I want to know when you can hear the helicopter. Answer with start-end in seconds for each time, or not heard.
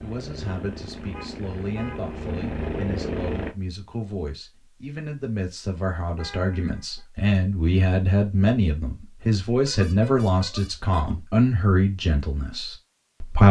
0.0-3.5.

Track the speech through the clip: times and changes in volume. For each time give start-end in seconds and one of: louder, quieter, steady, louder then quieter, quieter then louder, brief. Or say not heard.
0.0-13.4 louder.